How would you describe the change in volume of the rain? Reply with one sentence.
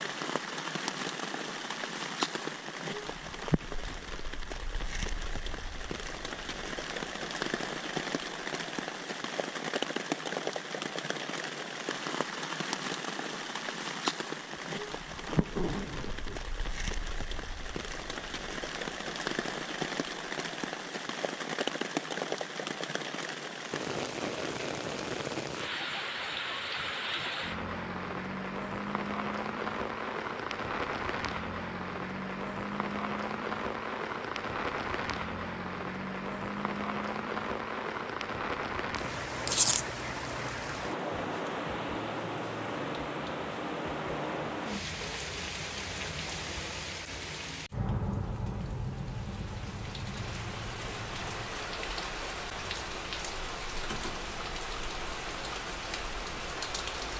The volume of the rain stays about the same.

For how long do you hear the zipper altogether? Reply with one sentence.
The zipper can be heard for 2 seconds in total.